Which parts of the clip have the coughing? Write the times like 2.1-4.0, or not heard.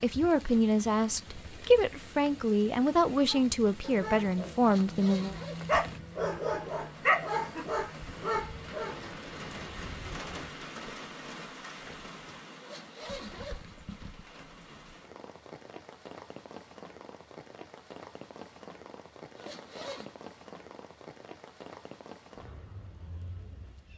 not heard.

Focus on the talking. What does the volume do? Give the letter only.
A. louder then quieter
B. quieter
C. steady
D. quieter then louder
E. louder
C.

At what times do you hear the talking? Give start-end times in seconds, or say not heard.
0.0-5.3.